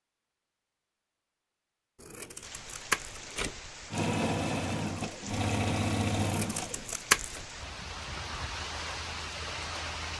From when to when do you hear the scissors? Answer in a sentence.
The scissors can be heard from 2.0 to 3.5 s and from 6.2 to 7.4 s.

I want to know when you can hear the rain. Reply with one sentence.
The rain can be heard from 2.4 to 10.1 s.